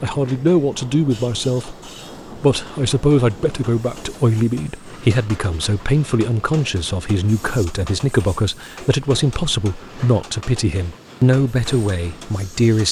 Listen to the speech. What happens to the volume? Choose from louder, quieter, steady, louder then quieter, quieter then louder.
steady.